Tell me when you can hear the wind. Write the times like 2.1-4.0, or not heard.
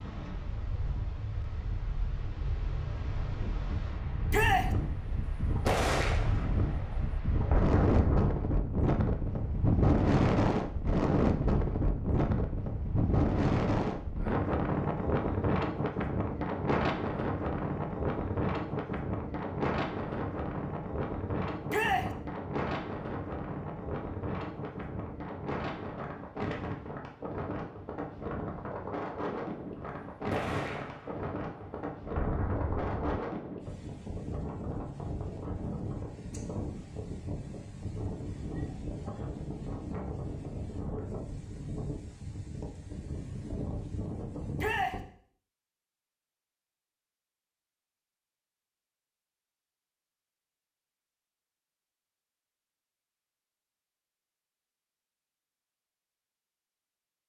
0.0-45.0.